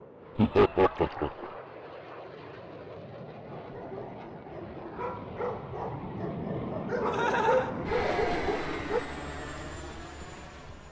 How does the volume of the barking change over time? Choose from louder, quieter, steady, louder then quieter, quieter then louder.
louder.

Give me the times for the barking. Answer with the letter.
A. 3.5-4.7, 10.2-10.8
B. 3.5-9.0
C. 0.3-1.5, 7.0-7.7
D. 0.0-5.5
B.